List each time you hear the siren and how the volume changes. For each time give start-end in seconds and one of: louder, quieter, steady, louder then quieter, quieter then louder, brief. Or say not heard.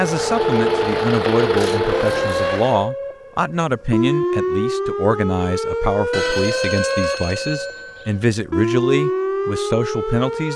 0.0-10.5 steady.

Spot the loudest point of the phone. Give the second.
1 s.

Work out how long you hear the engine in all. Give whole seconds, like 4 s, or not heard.
3 s.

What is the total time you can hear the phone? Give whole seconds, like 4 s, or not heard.
4 s.